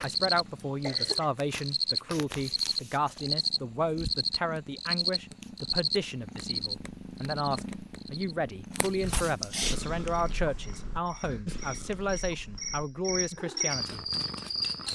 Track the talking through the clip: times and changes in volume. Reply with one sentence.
You can hear the talking from 0.0 to 14.1 s, at a steady volume.